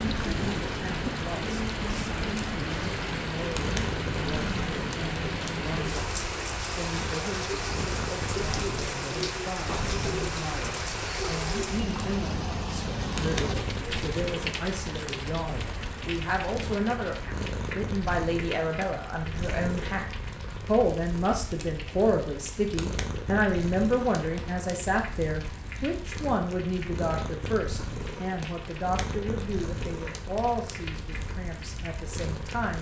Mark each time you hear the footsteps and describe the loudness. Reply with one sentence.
The footsteps can't be heard in this clip.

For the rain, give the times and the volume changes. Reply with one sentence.
The rain can be heard from 0.0 to 32.7 s, getting quieter.